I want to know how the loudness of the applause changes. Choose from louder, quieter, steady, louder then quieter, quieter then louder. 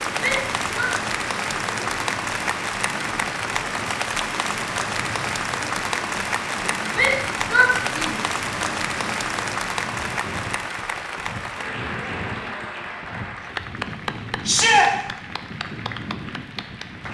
quieter.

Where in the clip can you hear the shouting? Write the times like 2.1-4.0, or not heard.
0.1-0.9, 6.9-8.2, 14.4-14.9.